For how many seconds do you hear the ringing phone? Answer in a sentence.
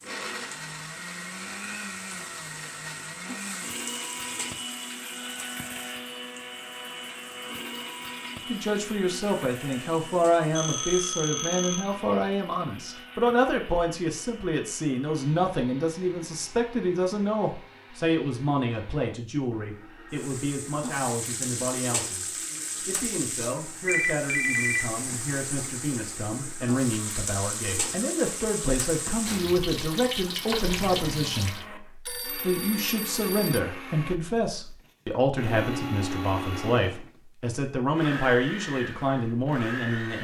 The ringing phone can be heard for 4 seconds in total.